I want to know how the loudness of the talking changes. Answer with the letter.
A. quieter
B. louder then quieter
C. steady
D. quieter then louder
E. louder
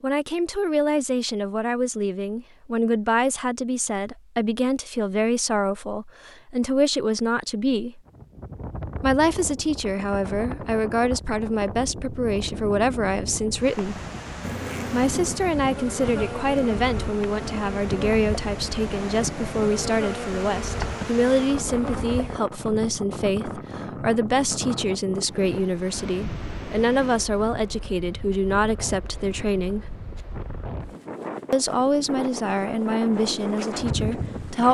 C.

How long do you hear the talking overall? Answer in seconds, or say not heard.
31 s.